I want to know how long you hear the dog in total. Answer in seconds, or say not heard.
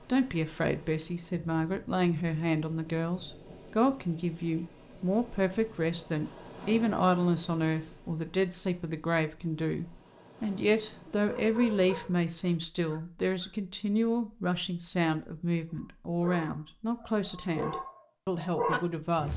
6 s.